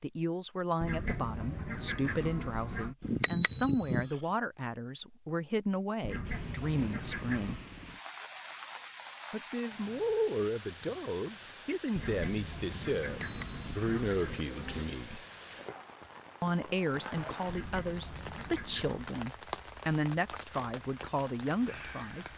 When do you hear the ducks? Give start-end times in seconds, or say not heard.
0.8-3.0, 6.0-7.7, 11.9-14.9, 17.4-19.0.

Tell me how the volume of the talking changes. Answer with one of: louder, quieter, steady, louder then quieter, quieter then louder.
steady.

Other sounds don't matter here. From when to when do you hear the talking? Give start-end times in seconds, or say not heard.
0.0-7.6, 9.3-15.2, 16.4-22.2.